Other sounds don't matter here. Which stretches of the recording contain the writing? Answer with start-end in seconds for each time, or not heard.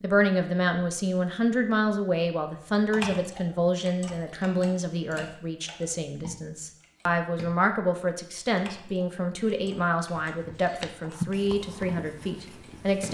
10.3-13.1.